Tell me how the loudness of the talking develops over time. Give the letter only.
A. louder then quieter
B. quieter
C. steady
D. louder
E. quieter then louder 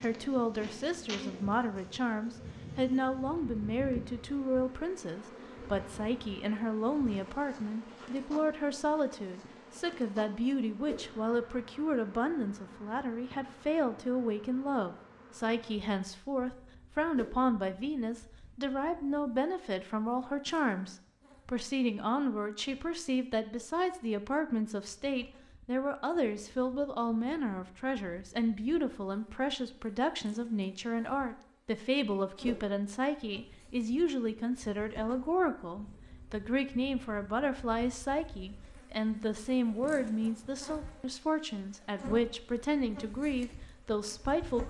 C.